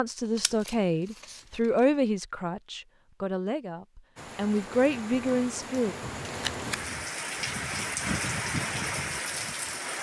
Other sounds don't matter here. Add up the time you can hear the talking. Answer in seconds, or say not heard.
6 s.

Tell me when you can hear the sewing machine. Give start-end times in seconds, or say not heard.
not heard.